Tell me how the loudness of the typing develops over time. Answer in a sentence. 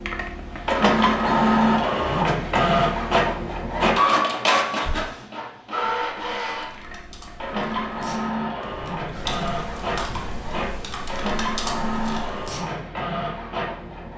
The loudness of the typing goes up.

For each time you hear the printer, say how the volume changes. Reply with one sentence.
You can hear the printer from 0.0 to 14.1 s, getting quieter.